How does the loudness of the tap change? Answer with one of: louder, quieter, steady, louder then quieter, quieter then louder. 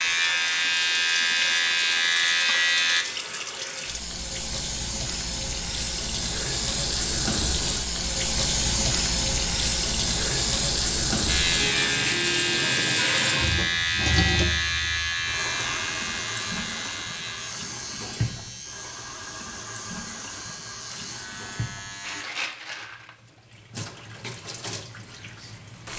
louder then quieter.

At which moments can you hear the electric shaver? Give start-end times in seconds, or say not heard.
0.0-3.0, 11.2-22.2.